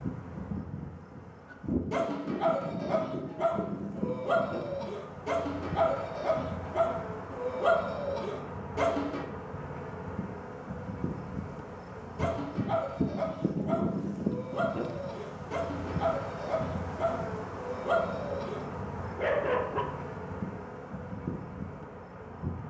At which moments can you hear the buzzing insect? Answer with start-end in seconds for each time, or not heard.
0.0-22.6.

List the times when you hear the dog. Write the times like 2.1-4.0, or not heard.
1.5-9.2, 12.2-19.9.